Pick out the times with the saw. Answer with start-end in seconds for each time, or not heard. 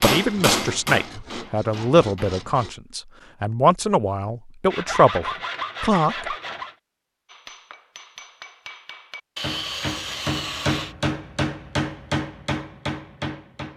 0.2-2.8, 4.7-6.8, 9.3-10.9.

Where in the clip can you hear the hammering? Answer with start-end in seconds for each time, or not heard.
0.0-2.5, 7.2-13.7.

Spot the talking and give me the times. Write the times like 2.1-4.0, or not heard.
0.0-6.3.